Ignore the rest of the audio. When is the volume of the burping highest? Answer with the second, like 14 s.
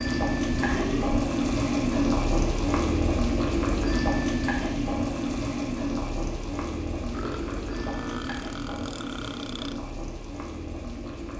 1 s.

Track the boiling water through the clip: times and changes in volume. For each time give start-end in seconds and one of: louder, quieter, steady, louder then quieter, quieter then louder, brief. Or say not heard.
0.0-11.3 quieter.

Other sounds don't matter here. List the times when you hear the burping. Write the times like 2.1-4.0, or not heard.
0.5-1.2, 7.1-9.8.